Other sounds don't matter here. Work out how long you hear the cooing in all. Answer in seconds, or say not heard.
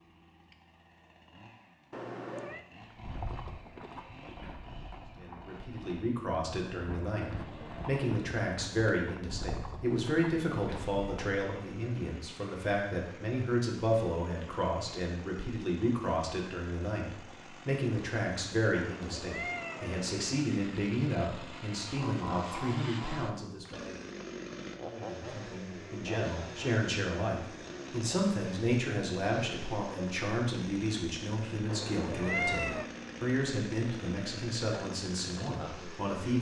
not heard.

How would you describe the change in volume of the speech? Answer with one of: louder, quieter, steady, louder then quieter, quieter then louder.
steady.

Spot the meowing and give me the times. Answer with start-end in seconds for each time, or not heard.
1.9-2.6, 18.8-20.4, 31.6-32.9.